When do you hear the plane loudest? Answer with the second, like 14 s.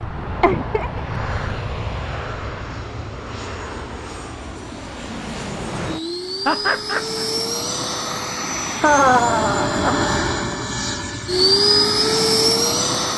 12 s.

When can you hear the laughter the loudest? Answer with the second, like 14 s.
9 s.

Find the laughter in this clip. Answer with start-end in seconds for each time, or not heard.
0.4-1.0, 6.5-7.2, 8.8-10.1.